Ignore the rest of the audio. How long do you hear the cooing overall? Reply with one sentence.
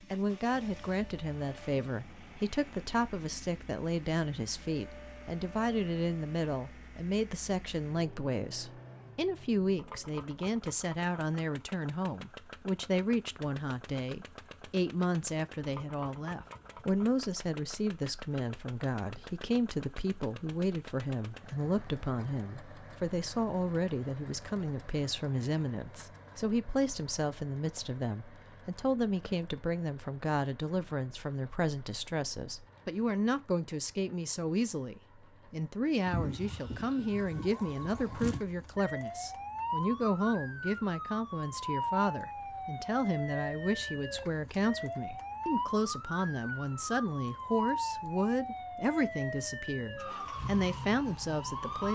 The cooing can't be heard in this clip.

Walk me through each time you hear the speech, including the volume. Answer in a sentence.
You can hear the speech from 0.1 to 51.9 s, at a steady volume.